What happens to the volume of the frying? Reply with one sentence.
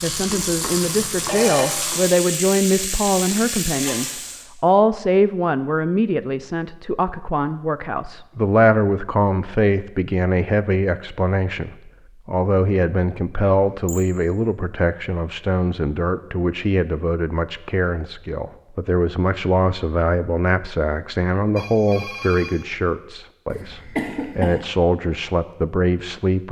The loudness of the frying stays about the same.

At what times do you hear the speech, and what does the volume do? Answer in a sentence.
The speech can be heard from 0.0 to 26.4 s, at a steady volume.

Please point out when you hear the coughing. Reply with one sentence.
The coughing can be heard from 23.5 to 24.6 s.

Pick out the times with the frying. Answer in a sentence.
You can hear the frying from 0.0 to 4.5 s.